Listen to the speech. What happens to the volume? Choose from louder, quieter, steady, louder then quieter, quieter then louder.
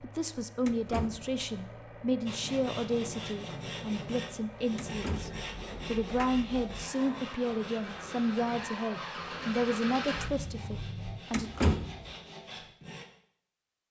steady.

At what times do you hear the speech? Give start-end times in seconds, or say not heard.
0.0-11.5.